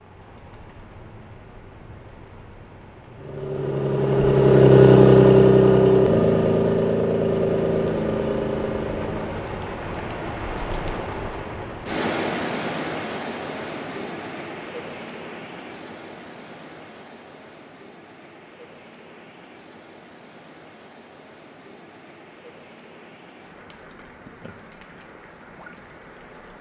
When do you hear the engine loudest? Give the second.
5 s.